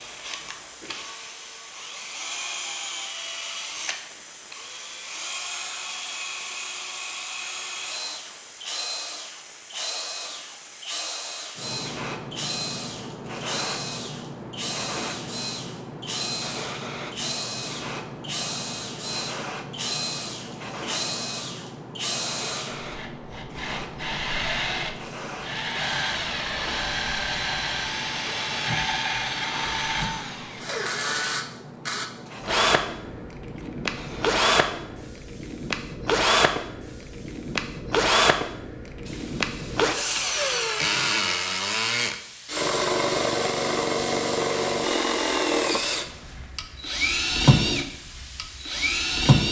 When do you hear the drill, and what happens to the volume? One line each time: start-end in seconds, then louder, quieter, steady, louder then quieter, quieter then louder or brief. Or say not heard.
0.0-49.4 louder.